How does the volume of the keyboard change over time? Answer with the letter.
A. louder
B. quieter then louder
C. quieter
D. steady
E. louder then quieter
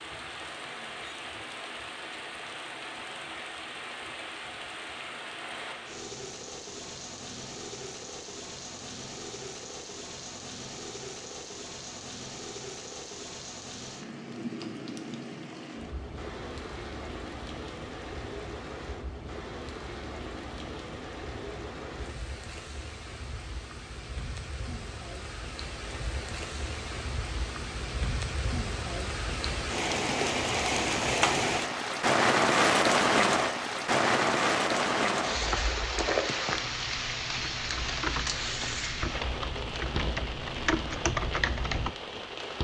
A.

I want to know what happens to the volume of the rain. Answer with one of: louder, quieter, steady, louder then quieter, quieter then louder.
louder.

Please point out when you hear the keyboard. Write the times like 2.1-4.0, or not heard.
36.5-42.0.